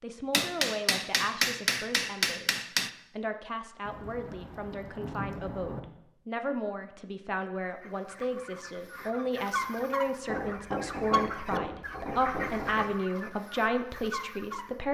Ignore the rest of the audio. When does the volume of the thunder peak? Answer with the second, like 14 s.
5 s.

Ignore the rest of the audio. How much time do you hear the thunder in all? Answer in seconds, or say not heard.
2 s.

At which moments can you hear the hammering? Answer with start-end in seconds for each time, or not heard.
0.3-2.9, 10.2-12.9.